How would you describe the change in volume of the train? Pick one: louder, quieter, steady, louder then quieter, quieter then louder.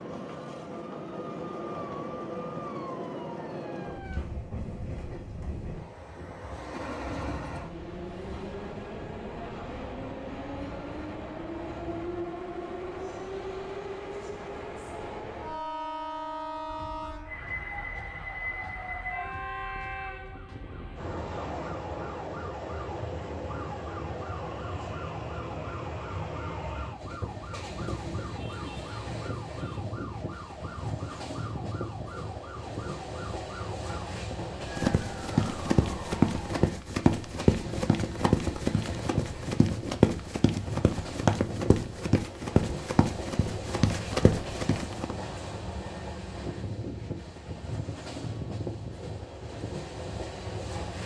steady.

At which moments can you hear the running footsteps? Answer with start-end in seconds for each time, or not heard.
34.3-45.1.